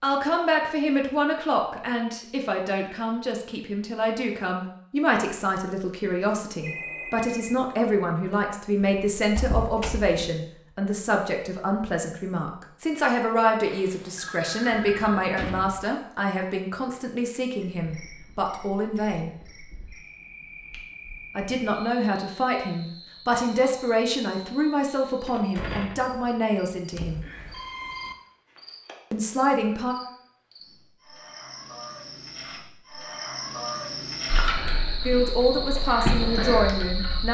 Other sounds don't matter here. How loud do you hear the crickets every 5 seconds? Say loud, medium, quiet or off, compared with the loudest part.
off, off, off, quiet, quiet, quiet, medium, loud.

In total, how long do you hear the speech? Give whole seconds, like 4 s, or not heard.
28 s.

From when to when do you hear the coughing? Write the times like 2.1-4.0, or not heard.
not heard.